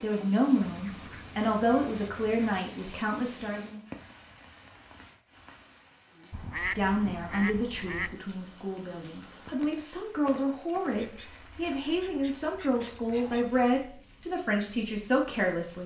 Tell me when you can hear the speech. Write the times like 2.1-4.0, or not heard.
0.0-3.8, 6.8-15.8.